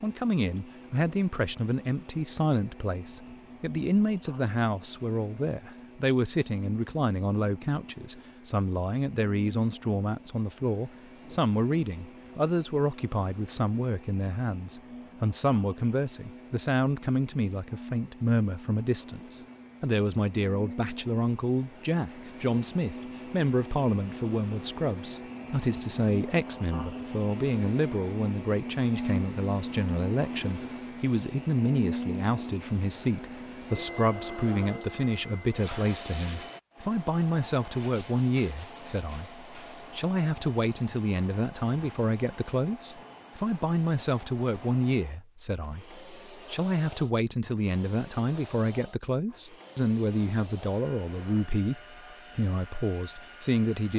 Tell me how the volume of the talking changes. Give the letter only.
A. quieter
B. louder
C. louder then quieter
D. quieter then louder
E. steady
E.